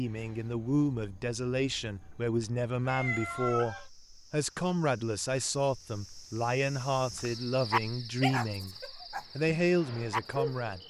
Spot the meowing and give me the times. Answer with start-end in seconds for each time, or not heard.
2.9-3.9.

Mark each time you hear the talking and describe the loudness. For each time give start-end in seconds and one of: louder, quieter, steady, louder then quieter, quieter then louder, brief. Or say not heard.
0.0-10.8 steady.